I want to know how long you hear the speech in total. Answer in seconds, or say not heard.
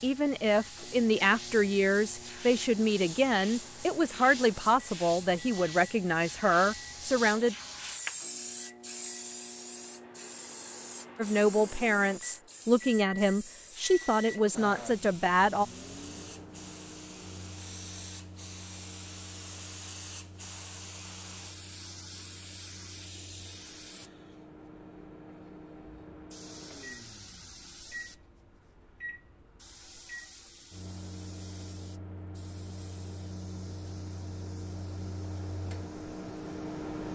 12 s.